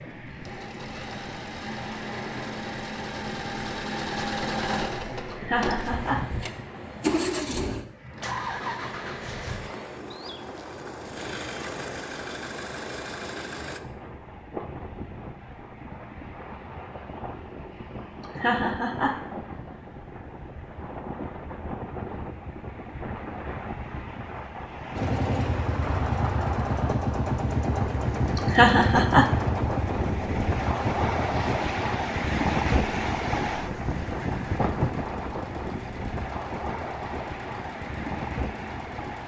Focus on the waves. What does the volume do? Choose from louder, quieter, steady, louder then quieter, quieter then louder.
louder.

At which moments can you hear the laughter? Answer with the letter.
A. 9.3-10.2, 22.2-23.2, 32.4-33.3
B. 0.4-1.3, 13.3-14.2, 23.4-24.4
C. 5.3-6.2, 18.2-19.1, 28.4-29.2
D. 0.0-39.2
C.